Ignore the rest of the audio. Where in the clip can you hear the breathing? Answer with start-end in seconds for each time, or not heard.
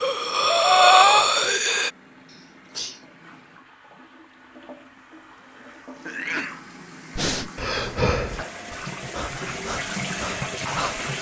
0.0-1.9, 7.2-11.1.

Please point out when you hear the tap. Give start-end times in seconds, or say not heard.
0.0-11.1.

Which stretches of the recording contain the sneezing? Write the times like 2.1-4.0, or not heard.
2.3-3.0, 6.0-6.7.